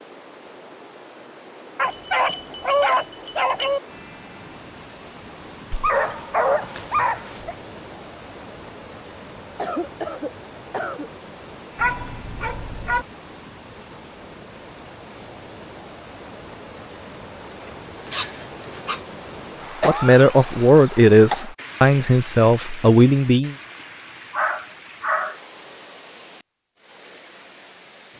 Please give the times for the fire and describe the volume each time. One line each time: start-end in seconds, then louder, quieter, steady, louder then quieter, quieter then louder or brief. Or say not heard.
not heard.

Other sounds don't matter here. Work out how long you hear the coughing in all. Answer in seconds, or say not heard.
3 s.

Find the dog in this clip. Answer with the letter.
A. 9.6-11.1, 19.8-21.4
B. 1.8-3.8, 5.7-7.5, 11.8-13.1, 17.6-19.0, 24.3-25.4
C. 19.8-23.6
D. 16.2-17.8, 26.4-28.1
B.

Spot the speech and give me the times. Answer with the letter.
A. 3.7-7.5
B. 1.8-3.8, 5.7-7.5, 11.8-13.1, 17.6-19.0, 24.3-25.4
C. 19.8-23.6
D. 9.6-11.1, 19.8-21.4
C.